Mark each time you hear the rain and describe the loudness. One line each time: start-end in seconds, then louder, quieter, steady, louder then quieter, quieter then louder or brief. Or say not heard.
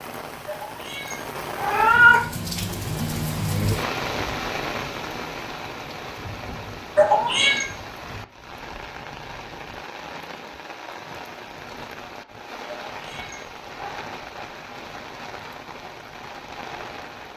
0.0-17.3 quieter.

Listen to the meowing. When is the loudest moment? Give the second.
2 s.